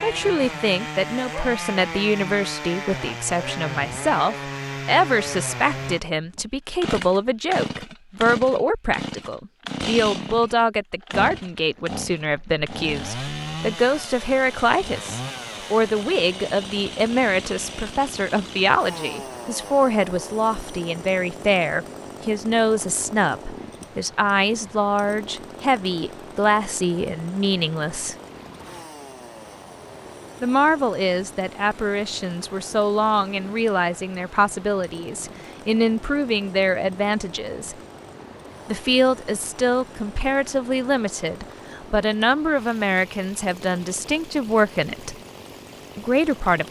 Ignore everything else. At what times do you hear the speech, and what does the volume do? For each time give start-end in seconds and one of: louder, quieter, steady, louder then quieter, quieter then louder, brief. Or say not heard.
0.0-28.1 steady
30.4-37.8 steady
38.6-45.1 steady
46.0-46.6 brief.